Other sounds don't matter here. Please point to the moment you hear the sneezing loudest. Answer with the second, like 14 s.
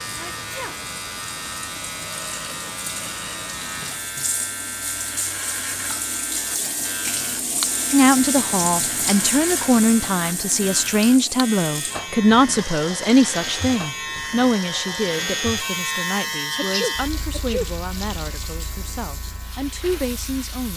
17 s.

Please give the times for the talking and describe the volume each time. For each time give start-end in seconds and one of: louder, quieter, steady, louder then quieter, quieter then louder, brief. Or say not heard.
7.9-20.7 quieter.